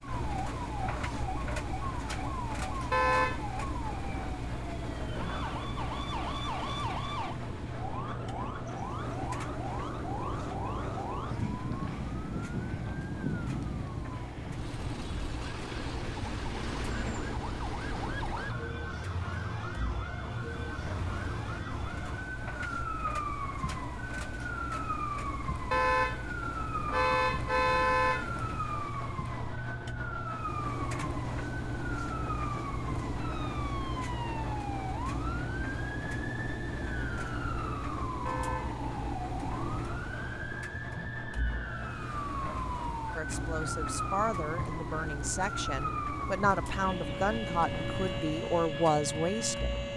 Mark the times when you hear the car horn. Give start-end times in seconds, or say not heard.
2.9-3.5, 25.7-28.3, 38.2-38.8.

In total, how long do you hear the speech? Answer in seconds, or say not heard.
7 s.